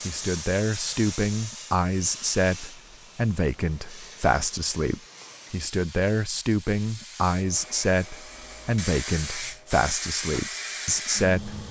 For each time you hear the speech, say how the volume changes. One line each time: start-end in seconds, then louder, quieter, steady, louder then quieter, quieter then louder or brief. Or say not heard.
0.1-11.6 steady.